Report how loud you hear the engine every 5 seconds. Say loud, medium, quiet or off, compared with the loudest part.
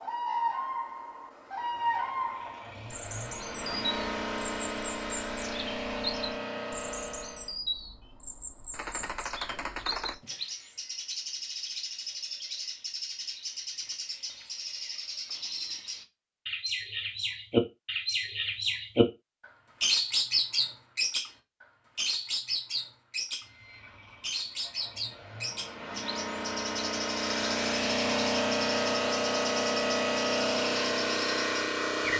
medium, medium, off, off, quiet, loud, loud.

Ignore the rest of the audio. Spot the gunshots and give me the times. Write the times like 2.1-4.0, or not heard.
8.7-10.4.